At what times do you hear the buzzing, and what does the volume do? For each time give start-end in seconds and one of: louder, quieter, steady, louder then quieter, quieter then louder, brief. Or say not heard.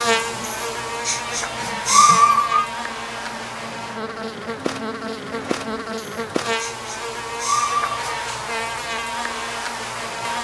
0.0-10.3 steady.